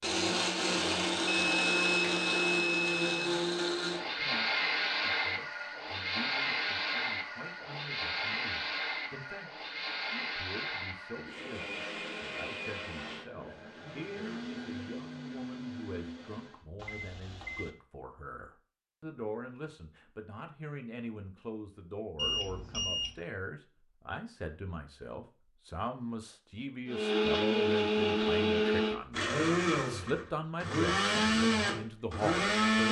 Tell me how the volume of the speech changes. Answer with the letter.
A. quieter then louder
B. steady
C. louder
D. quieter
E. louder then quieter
C.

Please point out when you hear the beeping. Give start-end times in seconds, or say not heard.
1.4-3.3, 16.8-17.7, 22.1-23.1.